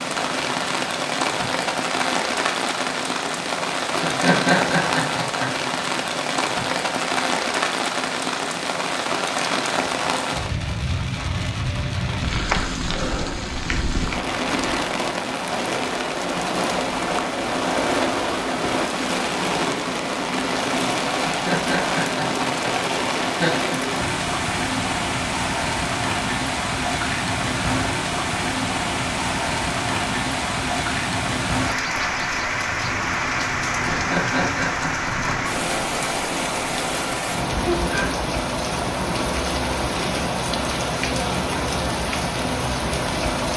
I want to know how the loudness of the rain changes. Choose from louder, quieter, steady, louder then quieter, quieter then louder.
steady.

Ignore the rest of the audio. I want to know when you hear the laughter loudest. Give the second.
4 s.